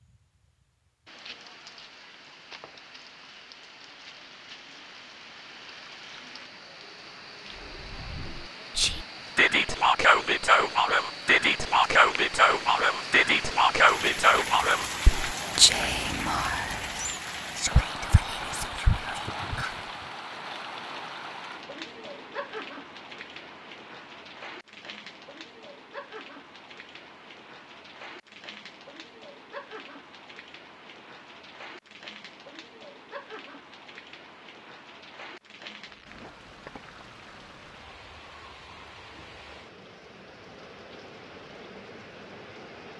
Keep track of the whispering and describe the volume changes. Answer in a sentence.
The loudness of the whispering goes down.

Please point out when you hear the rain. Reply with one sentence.
You can hear the rain from 0.0 to 42.9 s.